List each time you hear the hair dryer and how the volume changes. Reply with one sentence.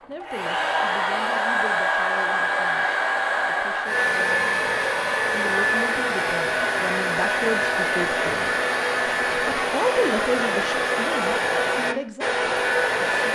The hair dryer can be heard from 0.0 to 13.3 s, at a steady volume.